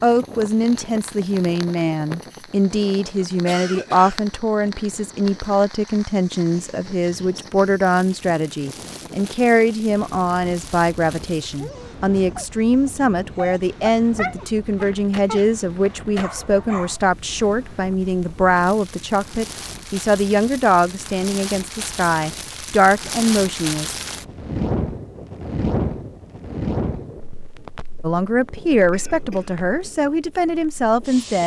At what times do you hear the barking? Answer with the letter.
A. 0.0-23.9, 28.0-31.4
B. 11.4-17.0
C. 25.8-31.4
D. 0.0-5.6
B.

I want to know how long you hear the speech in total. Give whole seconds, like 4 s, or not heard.
27 s.